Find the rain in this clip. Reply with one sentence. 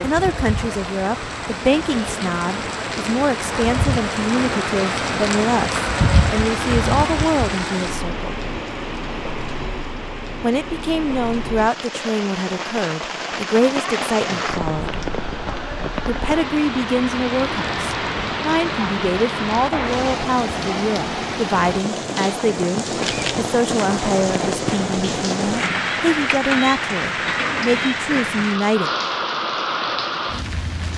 You can hear the rain from 0.0 to 30.9 s.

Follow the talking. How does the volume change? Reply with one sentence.
The loudness of the talking stays about the same.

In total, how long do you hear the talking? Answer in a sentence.
The talking can be heard for 26 seconds in total.